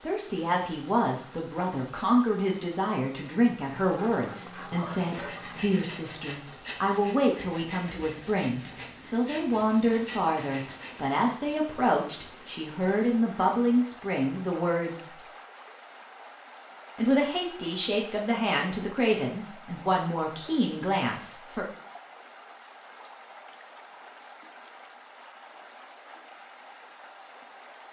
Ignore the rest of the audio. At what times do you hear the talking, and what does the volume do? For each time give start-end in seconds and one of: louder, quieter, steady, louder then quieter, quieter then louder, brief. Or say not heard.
0.0-15.2 steady
16.9-21.6 steady.